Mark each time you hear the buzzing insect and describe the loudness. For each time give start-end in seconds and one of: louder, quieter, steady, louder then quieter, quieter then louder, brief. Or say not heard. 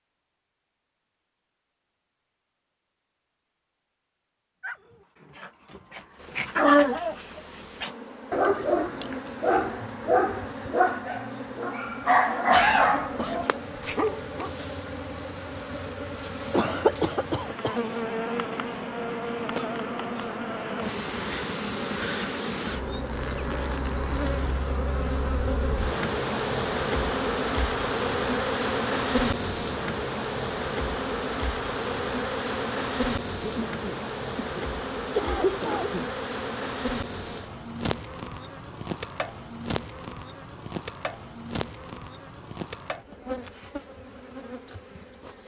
6.2-45.4 louder then quieter.